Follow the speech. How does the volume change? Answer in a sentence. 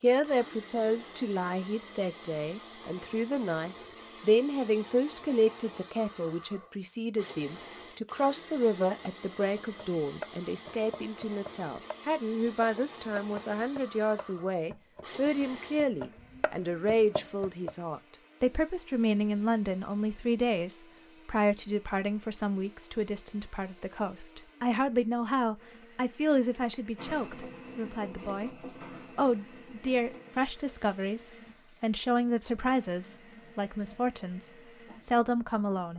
The loudness of the speech stays about the same.